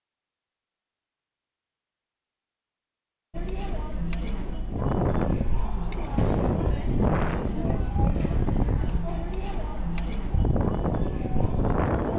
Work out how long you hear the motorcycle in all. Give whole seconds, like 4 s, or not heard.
not heard.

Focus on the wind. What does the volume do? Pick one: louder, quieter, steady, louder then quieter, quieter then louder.
quieter then louder.